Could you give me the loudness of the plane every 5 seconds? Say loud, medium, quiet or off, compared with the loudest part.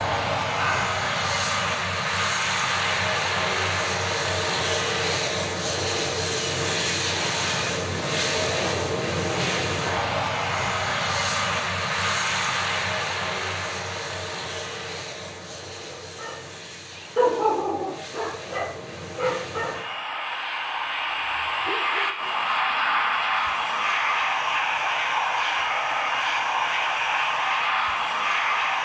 loud, loud, loud, quiet, loud, loud.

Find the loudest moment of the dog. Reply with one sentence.
The volume of the dog peaks at 17 seconds.